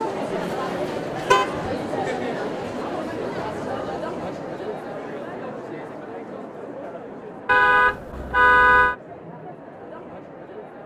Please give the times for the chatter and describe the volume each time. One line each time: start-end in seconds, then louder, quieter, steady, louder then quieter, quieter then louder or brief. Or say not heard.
0.0-10.8 quieter.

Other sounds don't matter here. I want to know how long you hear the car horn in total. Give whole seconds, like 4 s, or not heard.
3 s.